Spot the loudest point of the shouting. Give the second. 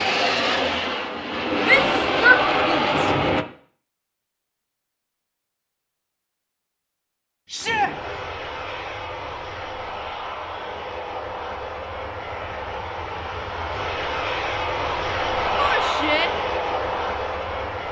2 s.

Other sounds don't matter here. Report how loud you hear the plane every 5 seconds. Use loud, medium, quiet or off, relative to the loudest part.
loud, medium, medium, loud.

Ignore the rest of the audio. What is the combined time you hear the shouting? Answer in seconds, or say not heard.
3 s.